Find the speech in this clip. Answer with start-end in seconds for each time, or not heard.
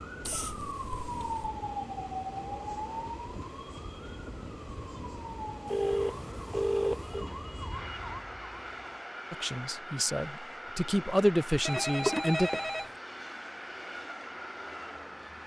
9.3-12.5.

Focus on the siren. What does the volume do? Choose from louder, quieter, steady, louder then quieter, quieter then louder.
quieter then louder.